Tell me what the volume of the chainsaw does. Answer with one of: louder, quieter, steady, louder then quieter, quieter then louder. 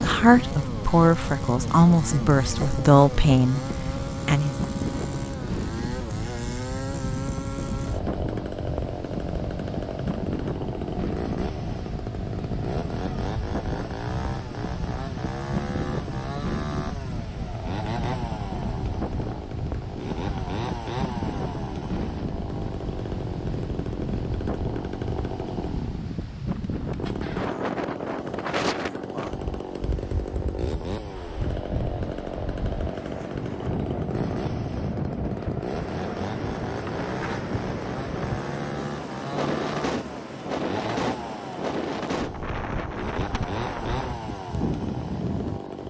steady.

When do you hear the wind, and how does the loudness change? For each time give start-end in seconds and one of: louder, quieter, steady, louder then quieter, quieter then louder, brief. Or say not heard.
0.0-45.8 steady.